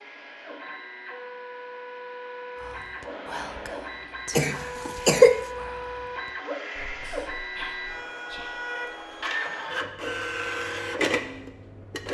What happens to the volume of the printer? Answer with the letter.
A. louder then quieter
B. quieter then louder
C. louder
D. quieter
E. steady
C.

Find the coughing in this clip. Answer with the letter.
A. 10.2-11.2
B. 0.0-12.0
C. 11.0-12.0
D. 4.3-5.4
D.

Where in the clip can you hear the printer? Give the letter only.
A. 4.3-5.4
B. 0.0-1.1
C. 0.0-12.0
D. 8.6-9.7
C.